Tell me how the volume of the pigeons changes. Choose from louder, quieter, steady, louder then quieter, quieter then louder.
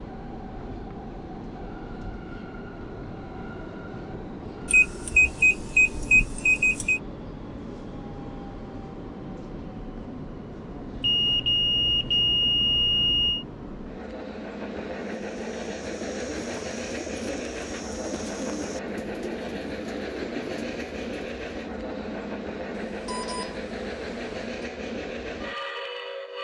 steady.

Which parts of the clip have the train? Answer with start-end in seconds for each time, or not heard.
0.0-26.3.